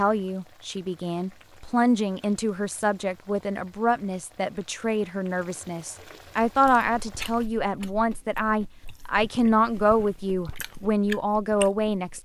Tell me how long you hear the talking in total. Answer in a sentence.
You can hear the talking for 12 seconds altogether.